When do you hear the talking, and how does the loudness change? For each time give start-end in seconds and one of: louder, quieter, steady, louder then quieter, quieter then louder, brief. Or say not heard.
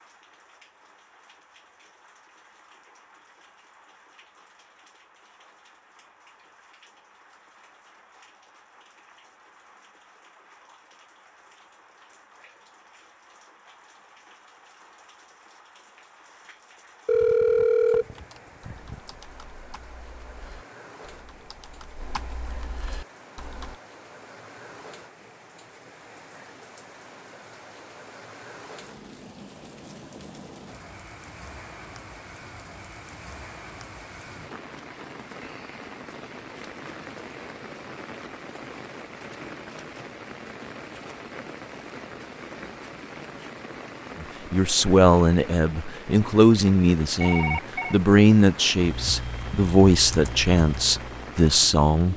44.2-52.1 steady.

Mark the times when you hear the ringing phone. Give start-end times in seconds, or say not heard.
17.1-19.0, 47.2-48.0.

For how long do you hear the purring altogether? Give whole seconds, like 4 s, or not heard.
not heard.